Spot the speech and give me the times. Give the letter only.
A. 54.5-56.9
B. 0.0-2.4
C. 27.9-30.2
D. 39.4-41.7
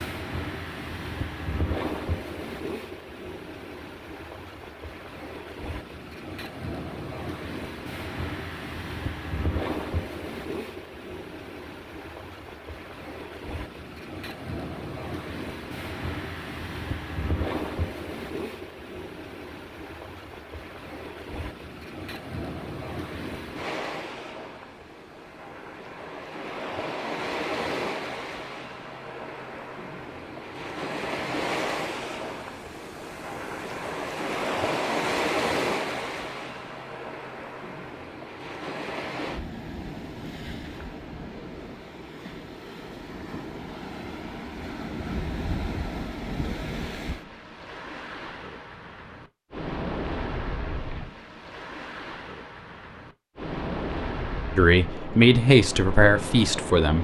A.